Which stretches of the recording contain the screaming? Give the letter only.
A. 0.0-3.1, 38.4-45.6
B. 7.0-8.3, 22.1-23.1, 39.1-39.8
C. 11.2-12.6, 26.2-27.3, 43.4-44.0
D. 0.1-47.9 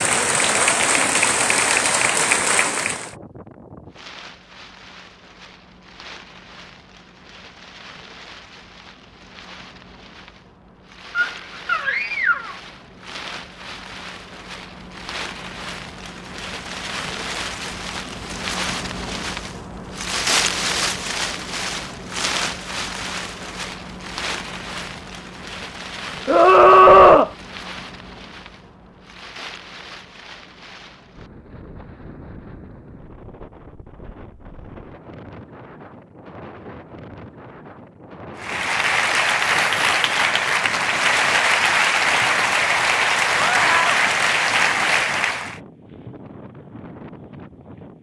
C.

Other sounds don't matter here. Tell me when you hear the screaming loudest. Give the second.
27 s.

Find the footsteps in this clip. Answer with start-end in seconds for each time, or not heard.
not heard.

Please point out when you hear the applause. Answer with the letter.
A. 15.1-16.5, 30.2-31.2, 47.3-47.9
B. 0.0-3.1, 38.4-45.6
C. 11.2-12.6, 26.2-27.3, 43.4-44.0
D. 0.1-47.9
B.